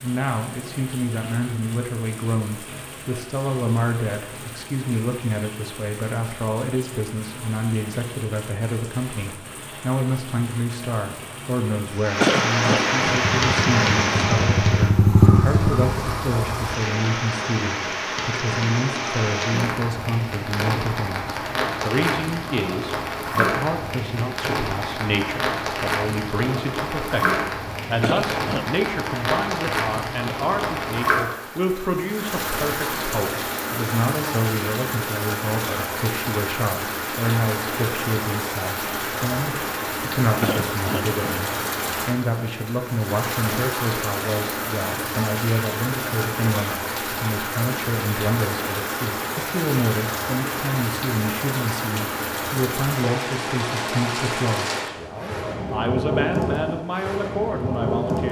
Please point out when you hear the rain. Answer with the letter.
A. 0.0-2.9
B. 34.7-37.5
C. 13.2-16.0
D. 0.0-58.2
D.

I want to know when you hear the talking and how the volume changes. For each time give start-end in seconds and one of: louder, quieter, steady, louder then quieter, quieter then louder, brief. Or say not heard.
0.0-58.2 steady.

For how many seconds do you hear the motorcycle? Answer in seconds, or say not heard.
3 s.